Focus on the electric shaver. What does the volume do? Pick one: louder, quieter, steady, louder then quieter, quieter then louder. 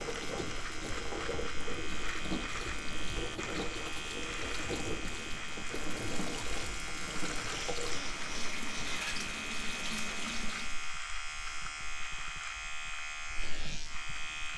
steady.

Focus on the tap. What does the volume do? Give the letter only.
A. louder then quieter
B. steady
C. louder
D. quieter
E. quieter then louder
B.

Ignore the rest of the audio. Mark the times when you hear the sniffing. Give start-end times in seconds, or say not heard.
7.5-9.1.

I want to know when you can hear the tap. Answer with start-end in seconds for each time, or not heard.
0.0-10.9.